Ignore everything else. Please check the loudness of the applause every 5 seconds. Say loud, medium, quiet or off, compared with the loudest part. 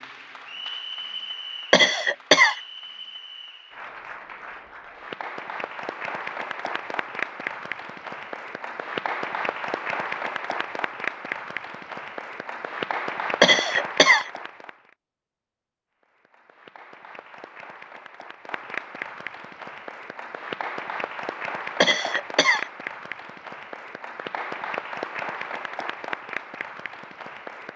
medium, loud, loud, medium, loud, loud.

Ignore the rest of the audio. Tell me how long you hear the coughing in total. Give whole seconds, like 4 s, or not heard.
3 s.